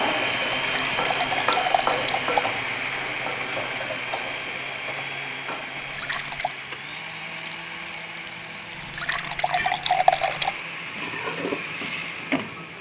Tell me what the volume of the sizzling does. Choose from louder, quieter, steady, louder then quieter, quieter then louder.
quieter then louder.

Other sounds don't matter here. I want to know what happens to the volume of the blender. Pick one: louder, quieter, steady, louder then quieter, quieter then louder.
quieter.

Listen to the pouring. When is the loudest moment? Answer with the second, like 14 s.
10 s.